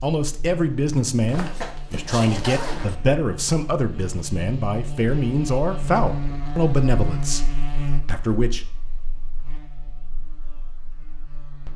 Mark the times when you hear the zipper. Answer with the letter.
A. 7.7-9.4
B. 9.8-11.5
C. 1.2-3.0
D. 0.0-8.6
C.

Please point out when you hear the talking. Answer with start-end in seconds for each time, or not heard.
0.0-8.6.